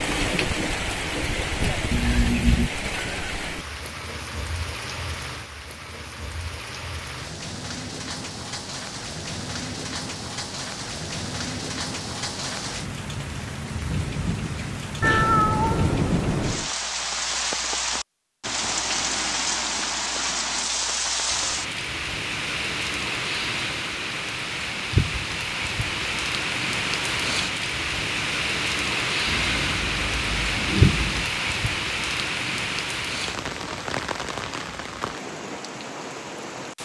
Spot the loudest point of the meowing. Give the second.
15 s.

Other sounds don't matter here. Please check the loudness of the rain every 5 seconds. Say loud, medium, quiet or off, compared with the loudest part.
loud, medium, medium, loud, loud, loud, loud, medium.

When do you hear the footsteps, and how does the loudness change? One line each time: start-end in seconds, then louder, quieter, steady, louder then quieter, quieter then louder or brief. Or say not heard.
not heard.